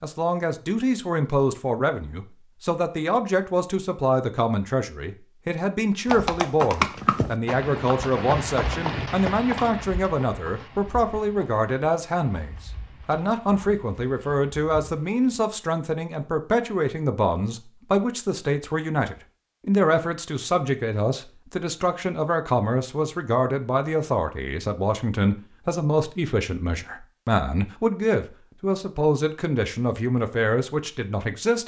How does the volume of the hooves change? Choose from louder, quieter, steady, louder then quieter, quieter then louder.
quieter.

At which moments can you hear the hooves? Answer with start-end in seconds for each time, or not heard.
6.0-15.4.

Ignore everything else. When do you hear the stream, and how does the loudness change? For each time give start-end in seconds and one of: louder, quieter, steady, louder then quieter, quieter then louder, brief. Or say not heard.
not heard.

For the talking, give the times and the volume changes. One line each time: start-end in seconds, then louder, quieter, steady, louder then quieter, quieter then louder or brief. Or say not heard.
0.0-31.6 steady.